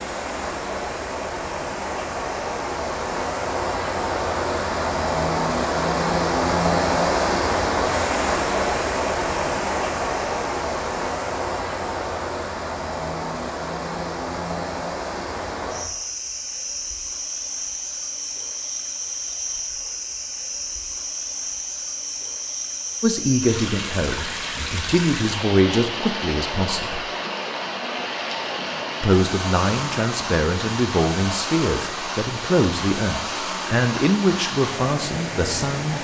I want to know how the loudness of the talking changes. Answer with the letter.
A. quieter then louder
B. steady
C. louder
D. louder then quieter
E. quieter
B.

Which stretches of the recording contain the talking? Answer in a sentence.
You can hear the talking from 23.0 to 27.1 s and from 29.0 to 35.9 s.